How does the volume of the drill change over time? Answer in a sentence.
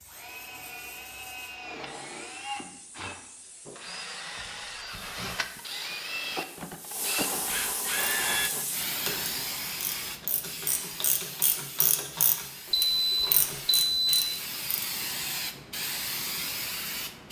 The volume of the drill goes up.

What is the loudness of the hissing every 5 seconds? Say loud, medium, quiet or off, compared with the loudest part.
quiet, loud, medium, loud.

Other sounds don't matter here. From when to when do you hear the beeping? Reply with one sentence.
You can hear the beeping from 12.7 to 14.2 s.